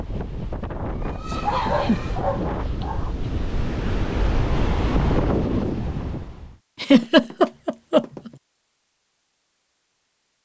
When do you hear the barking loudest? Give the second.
2 s.